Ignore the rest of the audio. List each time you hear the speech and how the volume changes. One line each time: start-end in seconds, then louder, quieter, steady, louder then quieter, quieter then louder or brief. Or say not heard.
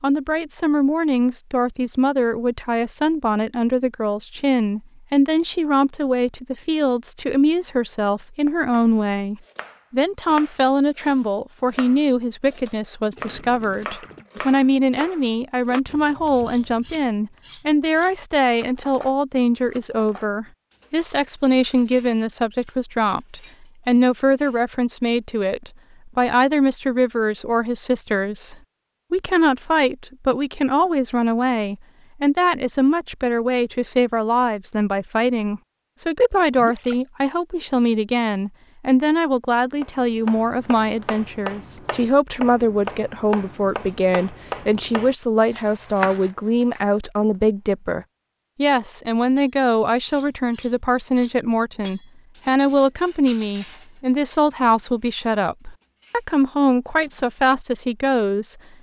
0.0-58.5 steady.